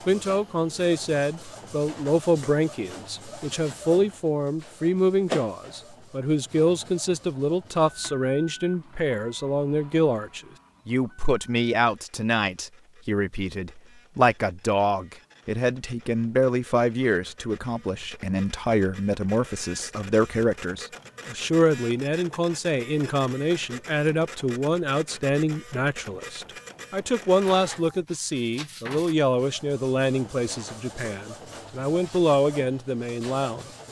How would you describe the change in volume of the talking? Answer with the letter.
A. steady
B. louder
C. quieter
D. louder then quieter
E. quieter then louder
A.